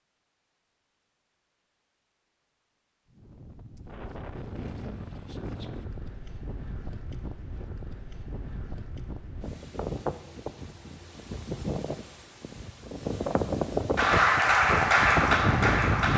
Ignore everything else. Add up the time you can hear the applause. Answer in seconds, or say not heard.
2 s.